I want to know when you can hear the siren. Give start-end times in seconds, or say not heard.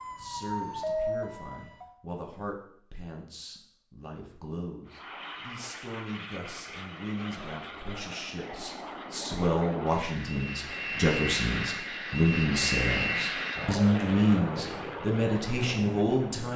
0.0-1.9.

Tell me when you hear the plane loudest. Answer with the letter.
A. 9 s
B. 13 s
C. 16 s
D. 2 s
B.